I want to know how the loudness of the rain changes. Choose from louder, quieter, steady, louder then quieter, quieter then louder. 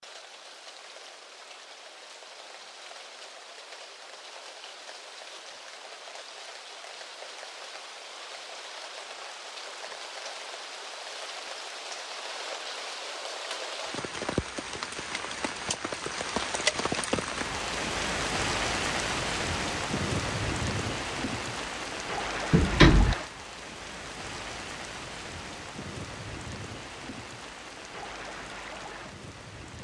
louder then quieter.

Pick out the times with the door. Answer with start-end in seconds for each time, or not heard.
22.5-23.1.